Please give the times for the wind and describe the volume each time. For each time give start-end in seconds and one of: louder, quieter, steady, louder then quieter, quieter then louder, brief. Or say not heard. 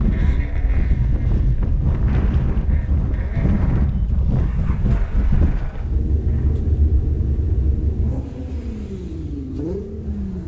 0.0-10.4 quieter.